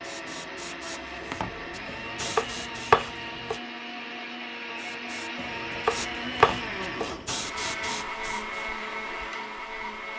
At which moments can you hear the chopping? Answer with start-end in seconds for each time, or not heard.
1.9-3.6, 5.3-7.2.